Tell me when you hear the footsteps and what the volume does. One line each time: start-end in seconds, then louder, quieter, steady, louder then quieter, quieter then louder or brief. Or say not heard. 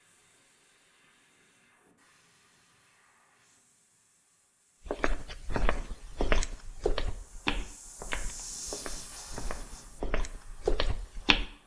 4.8-11.4 quieter then louder.